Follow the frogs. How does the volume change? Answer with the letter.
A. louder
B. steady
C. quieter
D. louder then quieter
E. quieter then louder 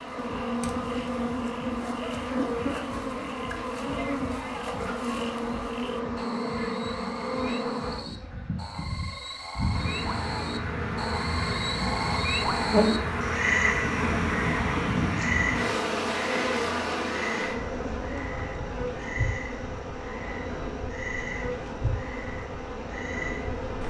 D.